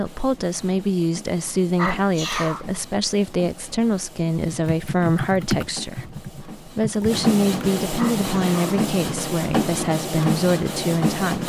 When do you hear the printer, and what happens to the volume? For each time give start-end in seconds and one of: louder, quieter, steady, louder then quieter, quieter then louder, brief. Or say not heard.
0.0-11.4 louder.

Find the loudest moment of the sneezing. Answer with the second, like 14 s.
2 s.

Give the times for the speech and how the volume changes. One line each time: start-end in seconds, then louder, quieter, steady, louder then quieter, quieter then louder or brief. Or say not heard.
0.0-11.4 steady.